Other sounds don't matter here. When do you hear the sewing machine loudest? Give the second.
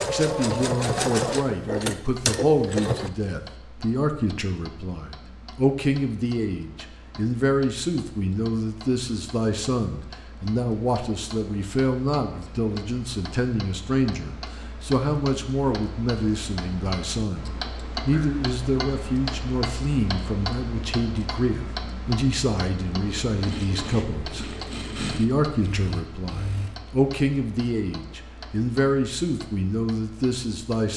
1 s.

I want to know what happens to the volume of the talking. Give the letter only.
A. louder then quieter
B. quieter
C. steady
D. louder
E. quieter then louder
C.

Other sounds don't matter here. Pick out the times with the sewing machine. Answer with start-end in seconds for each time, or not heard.
0.0-3.1, 23.0-26.8.